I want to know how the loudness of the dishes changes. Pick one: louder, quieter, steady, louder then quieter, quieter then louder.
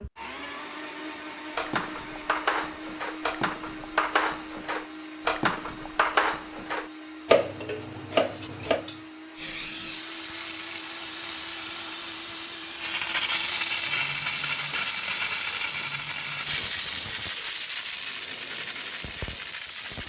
louder.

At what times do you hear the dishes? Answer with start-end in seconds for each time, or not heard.
1.6-8.9.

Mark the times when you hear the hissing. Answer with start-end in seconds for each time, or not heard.
9.3-20.0.